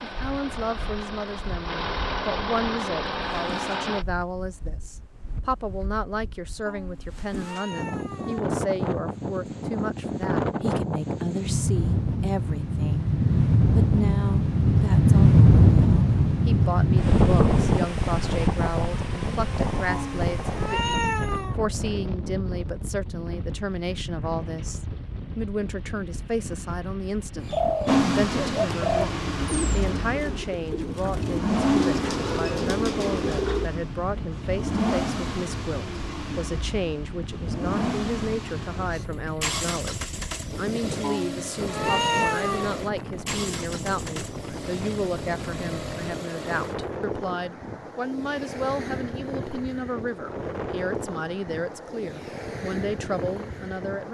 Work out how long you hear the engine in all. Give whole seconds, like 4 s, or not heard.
23 s.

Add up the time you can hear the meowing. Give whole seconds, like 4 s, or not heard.
5 s.